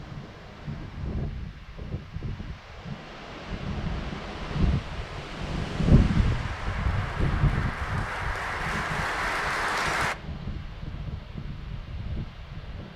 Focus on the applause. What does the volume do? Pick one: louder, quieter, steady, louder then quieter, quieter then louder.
louder.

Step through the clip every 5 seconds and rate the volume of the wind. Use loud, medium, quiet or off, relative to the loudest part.
medium, loud, medium.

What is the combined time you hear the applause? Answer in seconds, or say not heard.
4 s.